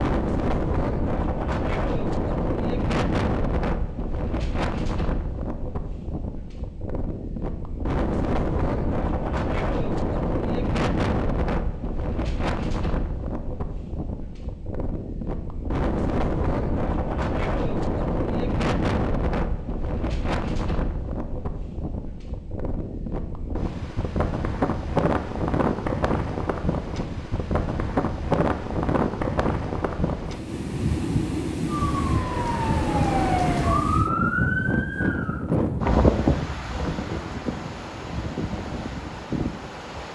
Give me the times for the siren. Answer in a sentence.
You can hear the siren from 31.6 to 35.4 s.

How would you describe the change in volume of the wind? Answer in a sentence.
The loudness of the wind stays about the same.